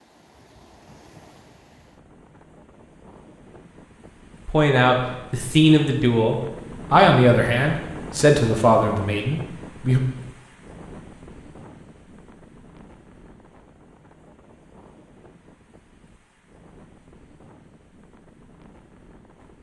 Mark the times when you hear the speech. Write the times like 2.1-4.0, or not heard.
4.5-10.0.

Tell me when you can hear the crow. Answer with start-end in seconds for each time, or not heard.
not heard.